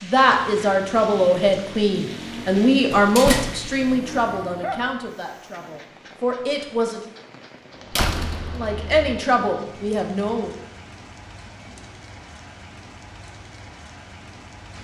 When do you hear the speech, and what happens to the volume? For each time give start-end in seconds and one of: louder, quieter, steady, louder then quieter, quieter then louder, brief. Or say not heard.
0.0-7.0 quieter
8.6-10.5 brief.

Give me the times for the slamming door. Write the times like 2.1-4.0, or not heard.
2.9-3.7, 7.9-9.2.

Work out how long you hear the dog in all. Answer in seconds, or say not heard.
not heard.